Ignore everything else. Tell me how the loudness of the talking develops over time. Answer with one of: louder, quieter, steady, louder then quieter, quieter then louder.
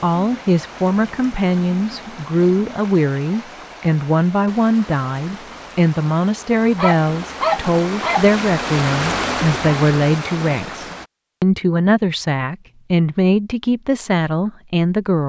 steady.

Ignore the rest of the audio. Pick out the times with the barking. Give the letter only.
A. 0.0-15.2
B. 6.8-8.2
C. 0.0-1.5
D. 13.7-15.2
B.